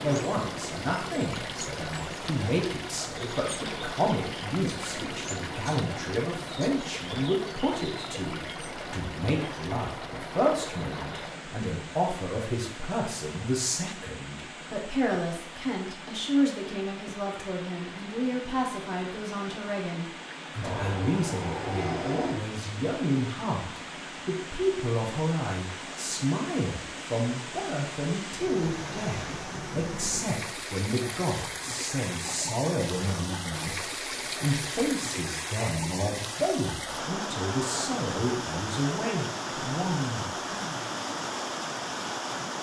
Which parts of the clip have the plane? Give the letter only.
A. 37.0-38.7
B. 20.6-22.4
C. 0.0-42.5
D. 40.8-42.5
B.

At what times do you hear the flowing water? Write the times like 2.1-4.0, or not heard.
0.0-42.5.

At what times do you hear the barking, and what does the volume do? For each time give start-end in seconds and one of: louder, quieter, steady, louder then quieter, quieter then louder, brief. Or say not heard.
not heard.